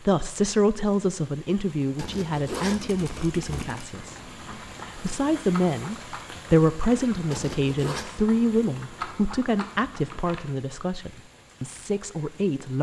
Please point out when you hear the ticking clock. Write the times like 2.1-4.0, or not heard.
not heard.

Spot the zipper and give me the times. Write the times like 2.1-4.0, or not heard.
1.9-3.6, 7.3-8.1.